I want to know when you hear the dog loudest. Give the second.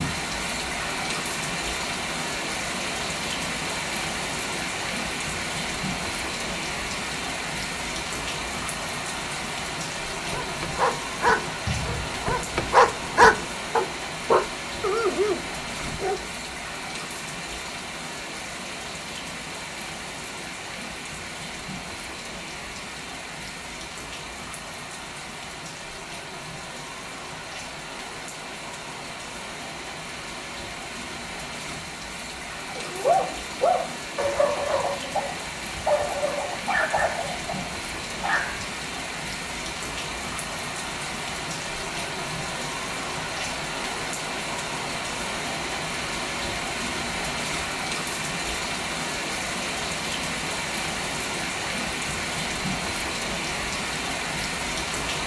13 s.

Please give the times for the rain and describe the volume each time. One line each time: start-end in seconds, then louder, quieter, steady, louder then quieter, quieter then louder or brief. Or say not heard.
0.0-55.2 quieter then louder.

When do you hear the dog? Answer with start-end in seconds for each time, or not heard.
10.3-16.2, 32.7-38.7.